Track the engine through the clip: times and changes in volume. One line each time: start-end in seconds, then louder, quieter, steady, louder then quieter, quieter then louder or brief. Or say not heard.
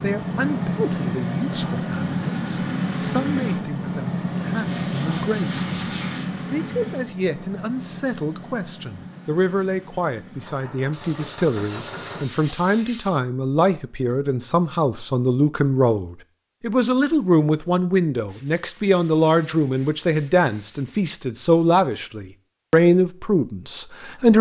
0.0-12.2 quieter.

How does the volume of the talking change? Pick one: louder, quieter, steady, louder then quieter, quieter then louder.
louder.